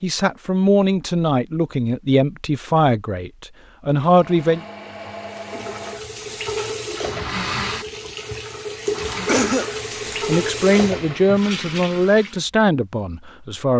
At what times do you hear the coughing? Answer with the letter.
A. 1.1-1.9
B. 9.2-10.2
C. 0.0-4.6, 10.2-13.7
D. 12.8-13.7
B.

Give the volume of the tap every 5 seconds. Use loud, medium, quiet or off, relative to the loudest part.
off, loud, loud.